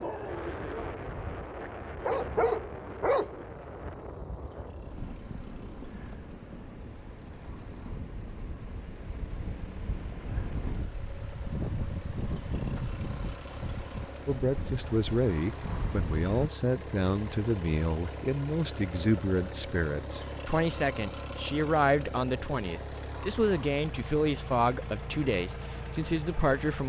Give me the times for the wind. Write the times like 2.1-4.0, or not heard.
0.0-16.5.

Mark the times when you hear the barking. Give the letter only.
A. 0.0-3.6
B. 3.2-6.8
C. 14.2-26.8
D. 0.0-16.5
A.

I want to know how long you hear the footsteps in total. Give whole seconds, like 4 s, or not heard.
not heard.